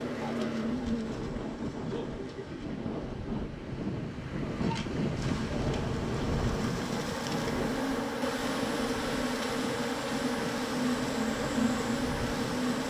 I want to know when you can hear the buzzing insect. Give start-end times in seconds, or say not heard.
0.0-12.8.